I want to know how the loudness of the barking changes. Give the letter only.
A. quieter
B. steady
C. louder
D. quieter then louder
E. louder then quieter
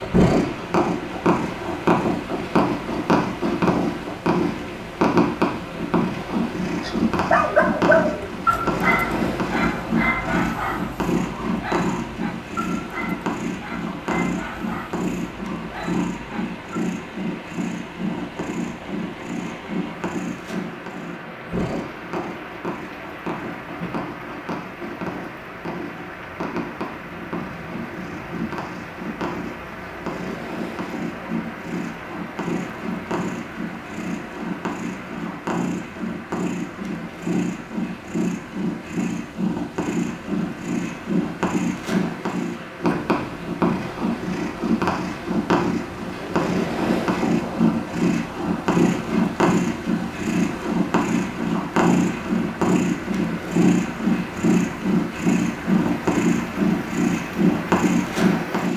A.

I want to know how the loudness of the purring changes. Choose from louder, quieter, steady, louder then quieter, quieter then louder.
quieter then louder.